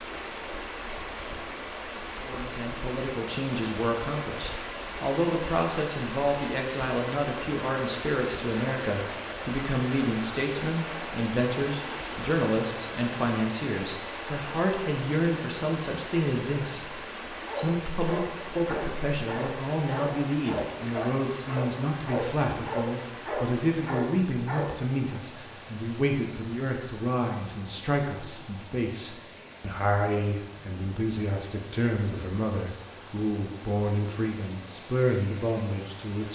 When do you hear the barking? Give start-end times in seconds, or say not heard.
17.4-25.1.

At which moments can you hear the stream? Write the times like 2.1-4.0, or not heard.
0.0-36.3.